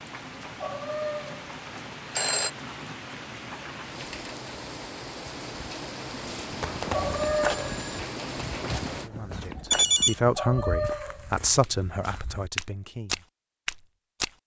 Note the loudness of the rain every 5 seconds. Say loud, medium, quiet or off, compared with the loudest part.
loud, loud, off.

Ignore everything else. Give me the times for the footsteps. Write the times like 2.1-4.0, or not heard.
6.8-14.3.